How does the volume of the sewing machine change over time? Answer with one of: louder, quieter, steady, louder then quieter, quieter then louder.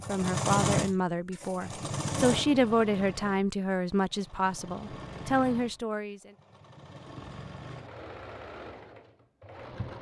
quieter.